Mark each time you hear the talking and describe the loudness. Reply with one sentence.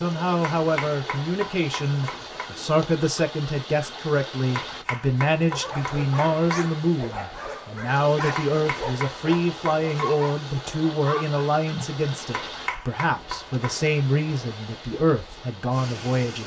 You can hear the talking from 0.0 to 16.4 s, at a steady volume.